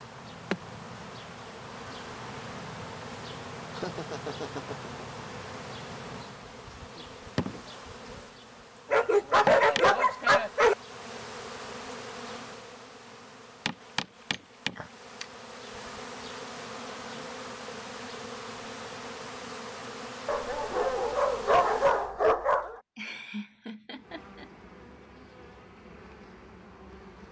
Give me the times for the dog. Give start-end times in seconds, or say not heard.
8.9-10.8, 20.2-22.8.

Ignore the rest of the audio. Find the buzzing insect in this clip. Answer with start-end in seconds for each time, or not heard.
0.0-22.1, 23.9-27.2.